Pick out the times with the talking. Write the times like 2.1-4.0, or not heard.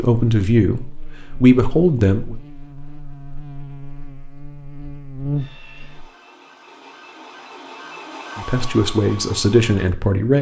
0.0-2.4, 8.3-10.3.